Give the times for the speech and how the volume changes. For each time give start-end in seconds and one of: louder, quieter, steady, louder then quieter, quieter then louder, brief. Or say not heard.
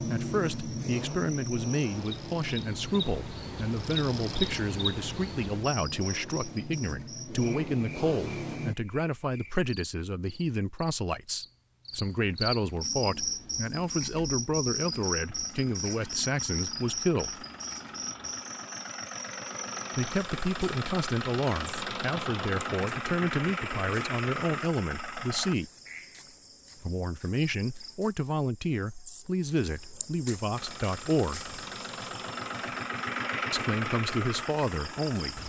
0.0-17.4 steady
19.9-25.7 steady
26.8-31.4 steady
33.5-35.4 brief.